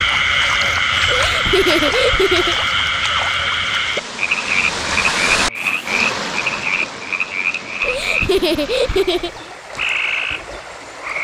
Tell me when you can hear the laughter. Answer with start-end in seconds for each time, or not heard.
1.1-2.5, 7.8-9.3.